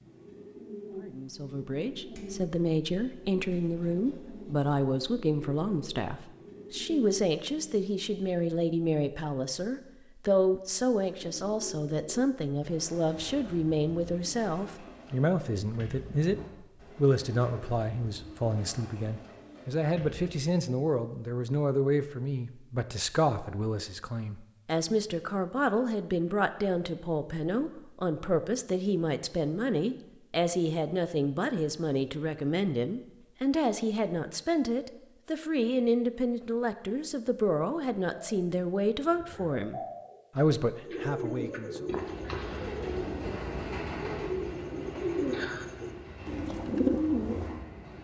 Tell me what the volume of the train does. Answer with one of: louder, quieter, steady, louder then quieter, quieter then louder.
quieter.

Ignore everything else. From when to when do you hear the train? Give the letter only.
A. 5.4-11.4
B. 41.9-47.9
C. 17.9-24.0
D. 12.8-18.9
B.